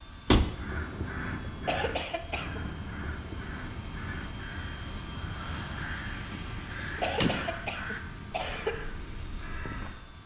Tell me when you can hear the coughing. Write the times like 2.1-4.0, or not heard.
1.4-2.6, 7.0-8.8.